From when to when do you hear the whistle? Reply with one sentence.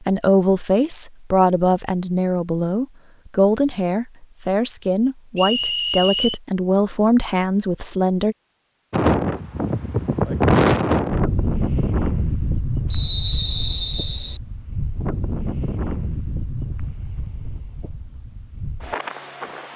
The whistle can be heard from 5.3 to 6.4 s and from 12.9 to 14.4 s.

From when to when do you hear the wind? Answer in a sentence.
The wind can be heard from 8.9 to 19.7 s.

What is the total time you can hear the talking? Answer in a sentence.
The talking can be heard for 8 seconds in total.